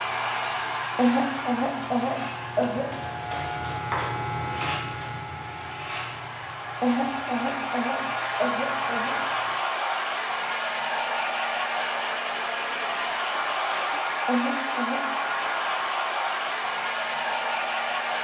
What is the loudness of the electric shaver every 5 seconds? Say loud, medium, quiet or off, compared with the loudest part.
loud, medium, off, off.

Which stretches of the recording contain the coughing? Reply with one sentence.
You can hear the coughing from 0.9 to 2.9 s, from 6.8 to 9.2 s and from 14.2 to 15.0 s.